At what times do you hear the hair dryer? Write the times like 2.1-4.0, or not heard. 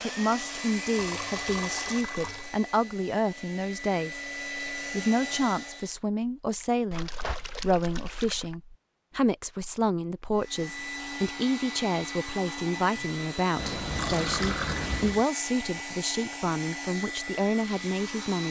0.0-6.0, 10.3-18.4.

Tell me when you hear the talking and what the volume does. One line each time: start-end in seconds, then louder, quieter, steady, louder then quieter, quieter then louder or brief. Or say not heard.
0.0-18.4 steady.